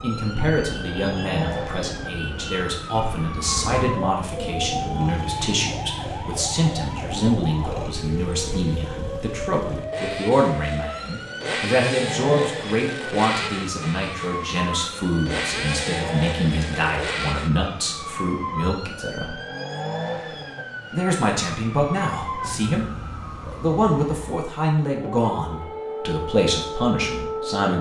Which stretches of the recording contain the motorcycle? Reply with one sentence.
You can hear the motorcycle from 0.0 to 17.5 s.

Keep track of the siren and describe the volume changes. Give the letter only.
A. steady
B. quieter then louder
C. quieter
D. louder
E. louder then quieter
A.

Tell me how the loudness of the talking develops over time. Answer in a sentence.
The volume of the talking stays about the same.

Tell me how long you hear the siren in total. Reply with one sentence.
You can hear the siren for 28 seconds altogether.